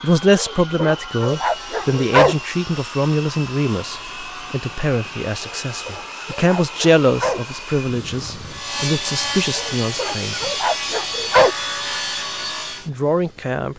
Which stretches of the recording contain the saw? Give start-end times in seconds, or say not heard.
1.4-12.9.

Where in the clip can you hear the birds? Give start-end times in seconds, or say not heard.
not heard.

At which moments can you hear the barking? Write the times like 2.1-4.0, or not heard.
0.3-2.4, 5.4-7.4, 9.6-11.6.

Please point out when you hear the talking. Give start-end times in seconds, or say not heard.
0.0-10.7, 12.8-13.7.